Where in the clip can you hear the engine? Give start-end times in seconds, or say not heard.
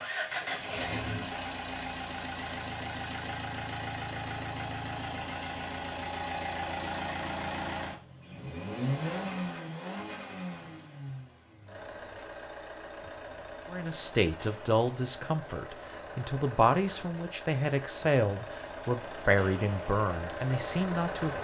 0.0-21.3.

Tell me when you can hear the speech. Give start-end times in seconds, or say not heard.
13.7-21.3.